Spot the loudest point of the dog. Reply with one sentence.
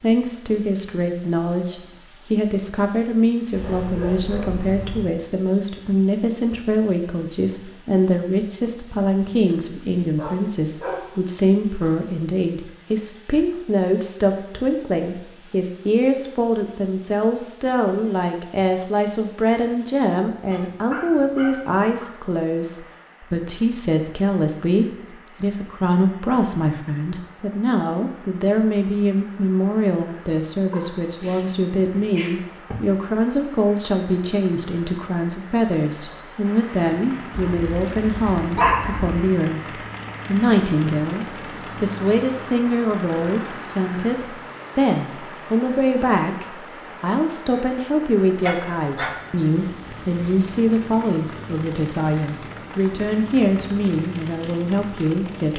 The loudest moment of the dog is at 39 seconds.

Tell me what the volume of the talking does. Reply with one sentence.
The volume of the talking stays about the same.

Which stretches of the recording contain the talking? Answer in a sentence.
You can hear the talking from 0.0 to 55.5 s.